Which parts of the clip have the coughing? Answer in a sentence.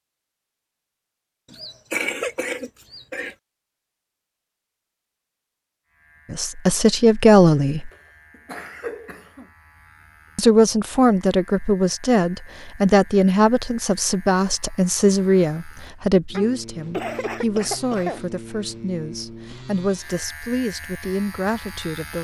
The coughing can be heard from 1.5 to 3.4 s, from 7.9 to 9.5 s and from 16.3 to 18.2 s.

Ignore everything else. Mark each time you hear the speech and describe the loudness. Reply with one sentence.
The speech can be heard briefly from 6.3 to 7.9 s; and from 10.3 to 22.1 s, getting quieter.